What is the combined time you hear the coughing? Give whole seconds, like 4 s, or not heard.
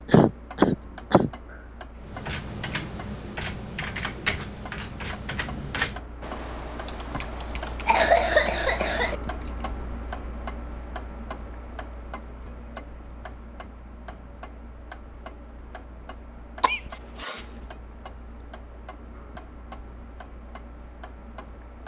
3 s.